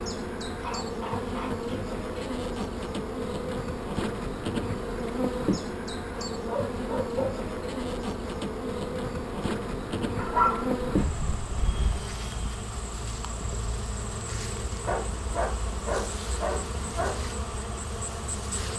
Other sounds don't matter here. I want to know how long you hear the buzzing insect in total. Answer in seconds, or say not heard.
19 s.